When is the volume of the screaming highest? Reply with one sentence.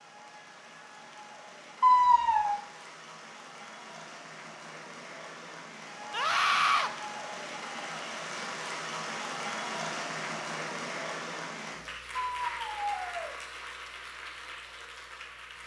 The loudest moment of the screaming is at 2 seconds.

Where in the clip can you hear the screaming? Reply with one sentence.
You can hear the screaming from 1.8 to 2.5 s, from 6.1 to 6.9 s and from 12.3 to 13.4 s.